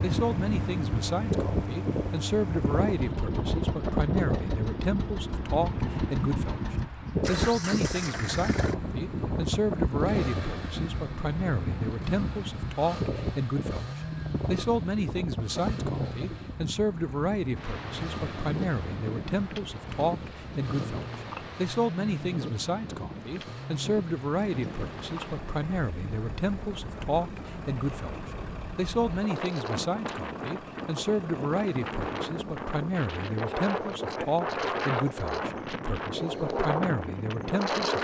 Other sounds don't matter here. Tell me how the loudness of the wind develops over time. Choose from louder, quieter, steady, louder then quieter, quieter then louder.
quieter then louder.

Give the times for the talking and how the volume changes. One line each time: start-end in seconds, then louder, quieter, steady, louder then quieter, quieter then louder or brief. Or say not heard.
0.0-37.9 steady.